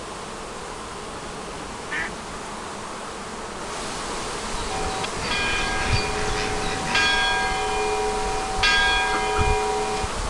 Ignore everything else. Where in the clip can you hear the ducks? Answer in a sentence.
You can hear the ducks from 1.1 to 2.2 s and from 5.2 to 7.2 s.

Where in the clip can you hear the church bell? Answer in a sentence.
The church bell can be heard from 4.7 to 10.1 s.